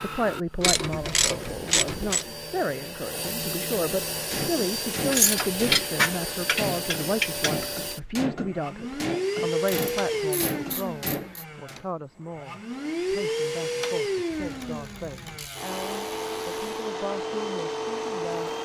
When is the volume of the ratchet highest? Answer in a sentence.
The loudest moment of the ratchet is at 6 seconds.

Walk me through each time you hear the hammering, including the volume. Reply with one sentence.
You can hear the hammering from 4.3 to 11.8 s, at a steady volume.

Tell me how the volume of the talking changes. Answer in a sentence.
The loudness of the talking goes down.